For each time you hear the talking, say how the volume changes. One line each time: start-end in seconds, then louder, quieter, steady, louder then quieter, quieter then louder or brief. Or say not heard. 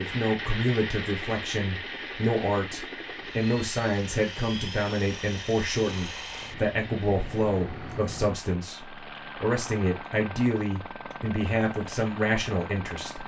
0.0-13.2 steady.